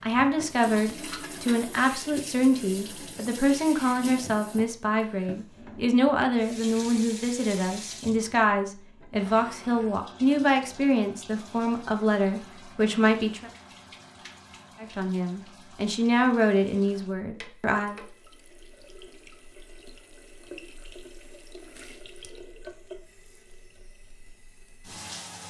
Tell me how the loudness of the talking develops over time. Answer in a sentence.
The volume of the talking stays about the same.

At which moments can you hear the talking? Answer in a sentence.
The talking can be heard from 0.0 to 13.5 s and from 14.8 to 18.0 s.